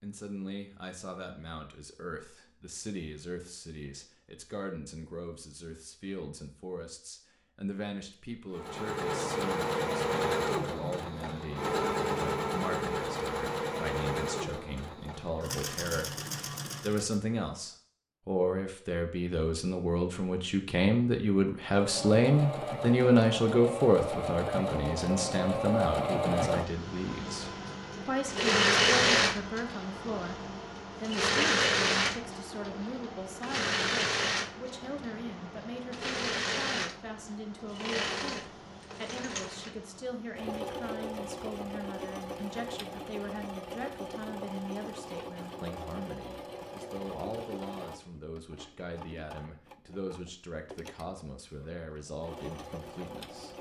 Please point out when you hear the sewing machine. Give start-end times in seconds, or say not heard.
8.5-17.2, 21.6-53.5.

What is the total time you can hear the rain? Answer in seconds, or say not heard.
not heard.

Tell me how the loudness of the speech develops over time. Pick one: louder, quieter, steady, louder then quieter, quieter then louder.
louder then quieter.